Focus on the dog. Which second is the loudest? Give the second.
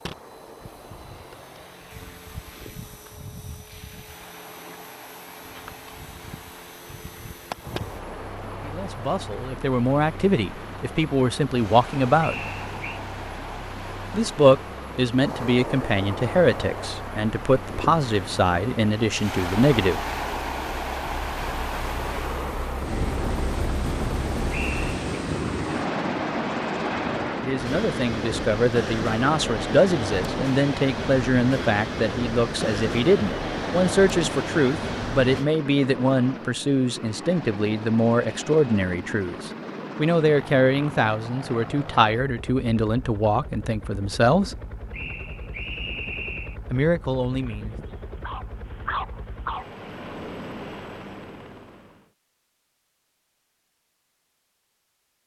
49 s.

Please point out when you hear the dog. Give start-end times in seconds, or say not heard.
47.3-49.7.